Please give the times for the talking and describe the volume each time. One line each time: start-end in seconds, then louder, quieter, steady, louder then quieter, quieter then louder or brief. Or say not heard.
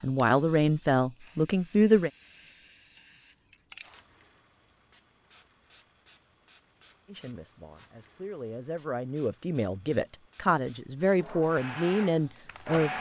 0.0-2.1 brief
7.0-12.9 louder.